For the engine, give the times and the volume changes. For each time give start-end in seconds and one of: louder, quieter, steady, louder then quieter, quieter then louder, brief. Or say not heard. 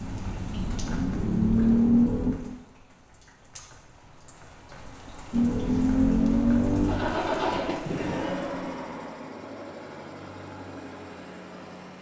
0.0-2.4 brief
5.3-11.9 quieter.